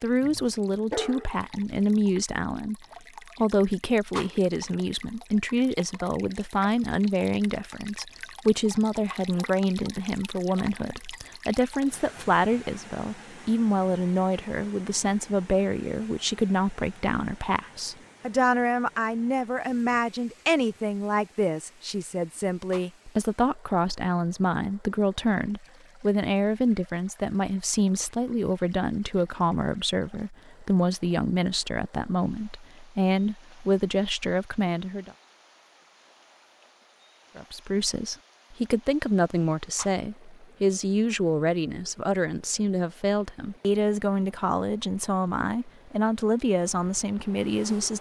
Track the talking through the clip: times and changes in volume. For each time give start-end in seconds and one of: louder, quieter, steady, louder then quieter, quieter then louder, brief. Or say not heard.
0.0-2.8 brief
3.4-35.1 steady
37.4-47.9 steady.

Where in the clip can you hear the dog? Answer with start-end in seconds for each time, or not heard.
0.2-1.9.